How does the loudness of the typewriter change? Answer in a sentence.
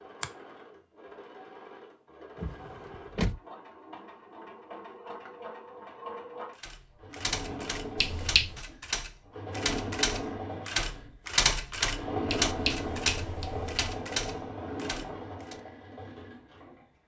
The loudness of the typewriter goes up, then down.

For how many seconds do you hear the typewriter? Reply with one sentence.
You can hear the typewriter for 9 seconds altogether.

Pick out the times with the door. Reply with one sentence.
You can hear the door from 2.4 to 3.4 s.